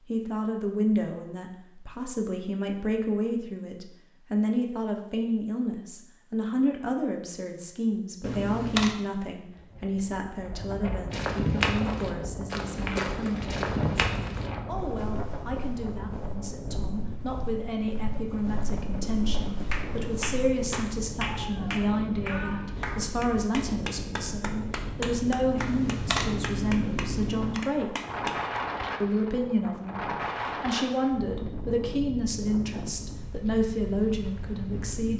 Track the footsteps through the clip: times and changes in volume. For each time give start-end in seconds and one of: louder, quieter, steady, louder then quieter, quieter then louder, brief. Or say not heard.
11.1-20.4 quieter then louder.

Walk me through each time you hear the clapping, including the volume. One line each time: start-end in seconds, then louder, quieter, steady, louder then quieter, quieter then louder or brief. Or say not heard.
19.7-28.6 steady.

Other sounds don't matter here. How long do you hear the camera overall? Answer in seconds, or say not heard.
3 s.